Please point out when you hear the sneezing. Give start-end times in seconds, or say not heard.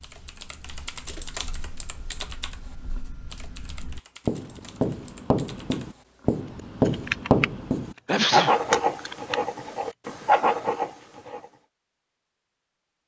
8.1-8.6.